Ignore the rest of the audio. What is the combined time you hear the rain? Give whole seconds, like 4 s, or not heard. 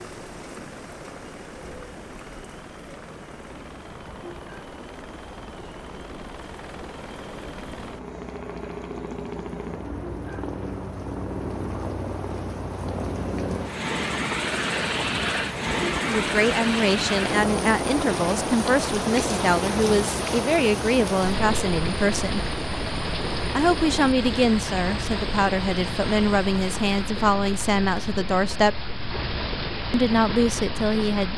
31 s.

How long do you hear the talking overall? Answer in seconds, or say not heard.
13 s.